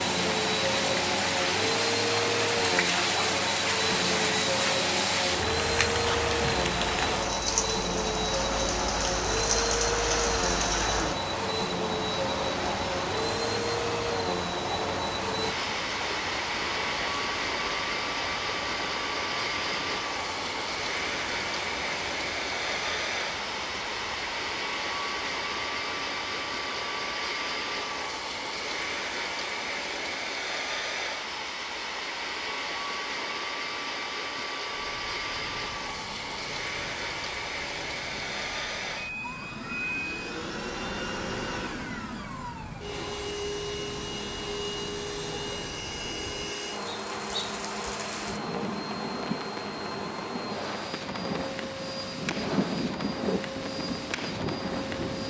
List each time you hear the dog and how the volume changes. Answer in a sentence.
You can't hear the dog here.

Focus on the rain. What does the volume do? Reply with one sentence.
The volume of the rain goes down, then up.